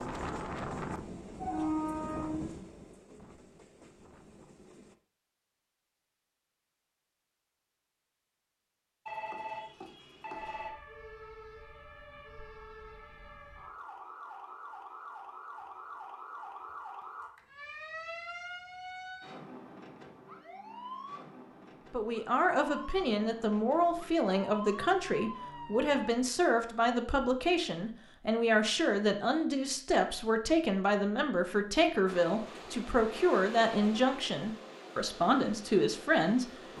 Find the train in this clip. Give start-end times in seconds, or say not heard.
0.0-5.0, 32.0-36.7.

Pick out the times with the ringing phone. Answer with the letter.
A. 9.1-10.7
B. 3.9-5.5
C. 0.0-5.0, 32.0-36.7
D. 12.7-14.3
A.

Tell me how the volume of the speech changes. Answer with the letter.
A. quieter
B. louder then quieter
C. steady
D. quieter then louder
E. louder
C.